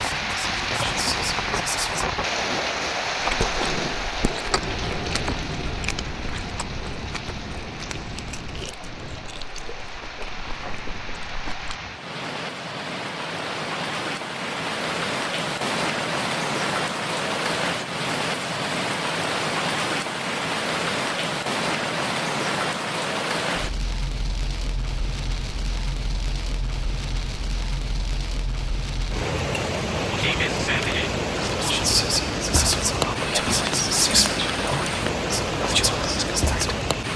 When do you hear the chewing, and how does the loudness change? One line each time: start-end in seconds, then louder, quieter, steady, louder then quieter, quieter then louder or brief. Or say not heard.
3.2-11.8 quieter.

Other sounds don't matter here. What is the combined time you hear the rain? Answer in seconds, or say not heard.
37 s.